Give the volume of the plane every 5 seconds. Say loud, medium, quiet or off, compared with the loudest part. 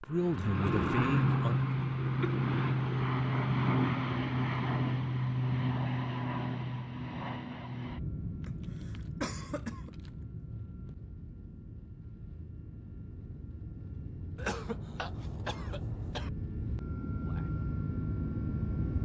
loud, medium, quiet, medium.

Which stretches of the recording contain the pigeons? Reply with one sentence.
You can't hear the pigeons here.